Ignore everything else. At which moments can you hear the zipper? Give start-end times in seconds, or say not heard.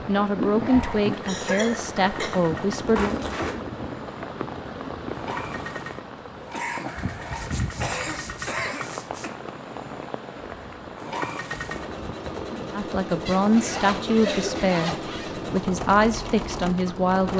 3.0-3.6, 7.3-9.3, 13.2-15.3.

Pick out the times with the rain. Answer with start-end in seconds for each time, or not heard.
0.0-17.2.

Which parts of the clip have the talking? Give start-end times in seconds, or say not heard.
0.1-3.1, 12.8-17.3.